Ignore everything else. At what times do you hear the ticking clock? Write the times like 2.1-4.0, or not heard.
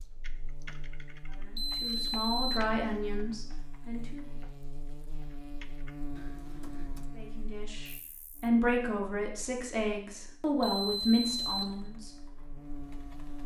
not heard.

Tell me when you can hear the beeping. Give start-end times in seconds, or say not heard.
1.6-2.6, 10.6-11.8.